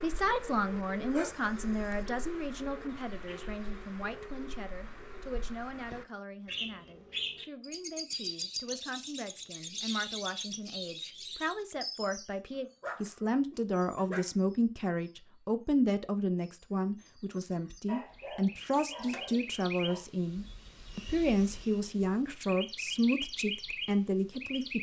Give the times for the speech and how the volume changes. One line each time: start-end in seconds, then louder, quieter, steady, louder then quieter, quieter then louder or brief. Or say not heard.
0.0-24.7 quieter then louder.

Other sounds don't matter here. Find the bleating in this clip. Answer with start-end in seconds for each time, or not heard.
not heard.